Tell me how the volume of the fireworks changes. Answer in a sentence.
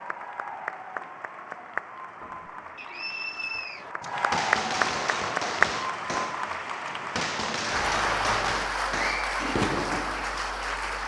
The volume of the fireworks stays about the same.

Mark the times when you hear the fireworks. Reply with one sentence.
You can hear the fireworks from 3.9 to 10.4 s.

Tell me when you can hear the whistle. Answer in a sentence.
You can hear the whistle from 2.8 to 3.9 s.